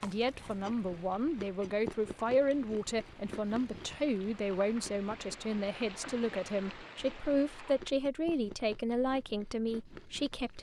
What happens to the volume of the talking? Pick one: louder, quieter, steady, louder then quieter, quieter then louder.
steady.